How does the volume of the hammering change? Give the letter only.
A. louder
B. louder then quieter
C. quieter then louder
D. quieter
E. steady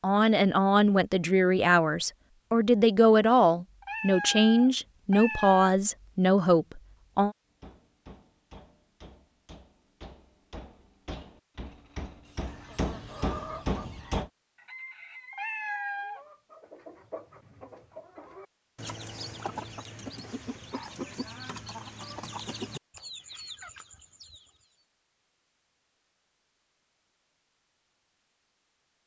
A.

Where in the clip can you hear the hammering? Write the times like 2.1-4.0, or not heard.
7.5-14.3.